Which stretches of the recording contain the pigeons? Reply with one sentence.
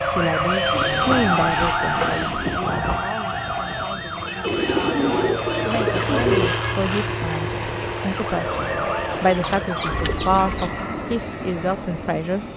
You can hear the pigeons from 0.7 to 2.6 s, from 4.4 to 6.6 s and from 9.1 to 10.7 s.